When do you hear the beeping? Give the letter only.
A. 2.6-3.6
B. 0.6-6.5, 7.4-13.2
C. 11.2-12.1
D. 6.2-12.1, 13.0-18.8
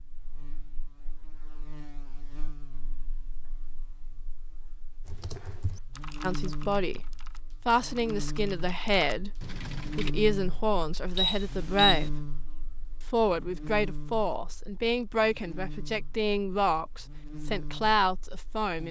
C.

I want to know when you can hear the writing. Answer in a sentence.
The writing can't be heard in this clip.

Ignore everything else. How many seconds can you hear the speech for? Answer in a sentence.
The speech can be heard for 12 seconds in total.